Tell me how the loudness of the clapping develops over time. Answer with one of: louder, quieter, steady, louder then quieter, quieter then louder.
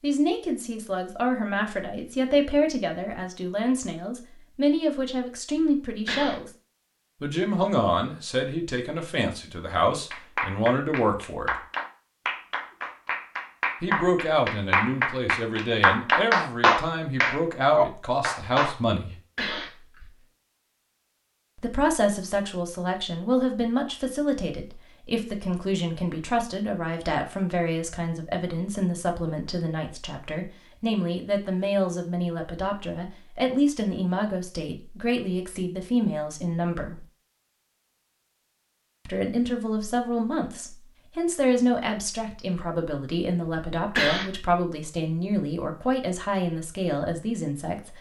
louder.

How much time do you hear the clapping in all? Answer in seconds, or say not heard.
9 s.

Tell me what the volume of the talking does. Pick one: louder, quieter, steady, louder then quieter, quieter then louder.
steady.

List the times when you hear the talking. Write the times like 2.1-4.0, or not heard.
0.0-6.5, 7.2-11.6, 13.8-19.1, 21.6-37.0, 39.0-47.9.